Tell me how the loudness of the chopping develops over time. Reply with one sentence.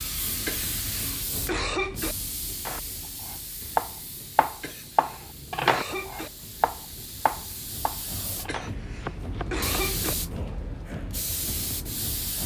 The volume of the chopping goes down.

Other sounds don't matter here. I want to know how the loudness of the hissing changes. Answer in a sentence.
The loudness of the hissing goes down, then up.